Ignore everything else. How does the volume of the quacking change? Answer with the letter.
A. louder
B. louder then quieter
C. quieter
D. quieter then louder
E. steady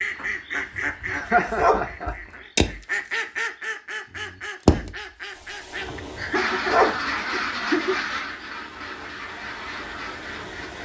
B.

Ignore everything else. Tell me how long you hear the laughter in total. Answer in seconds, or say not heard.
3 s.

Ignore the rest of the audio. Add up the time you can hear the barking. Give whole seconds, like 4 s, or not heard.
2 s.